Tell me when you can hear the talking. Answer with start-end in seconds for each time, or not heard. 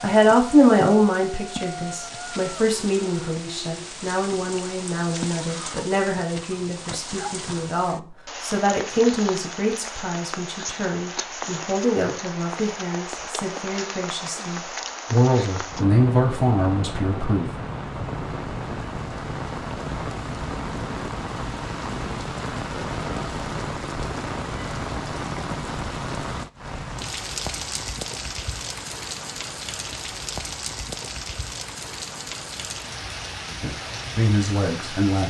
0.0-17.5, 33.5-35.2.